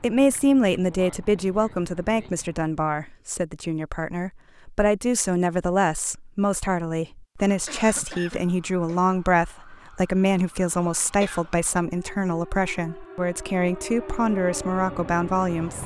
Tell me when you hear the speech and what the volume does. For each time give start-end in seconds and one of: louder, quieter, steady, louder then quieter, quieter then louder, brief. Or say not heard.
0.0-15.8 steady.